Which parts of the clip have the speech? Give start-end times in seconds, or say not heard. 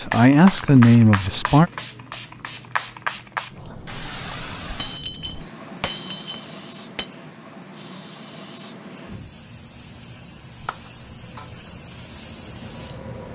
0.0-1.7.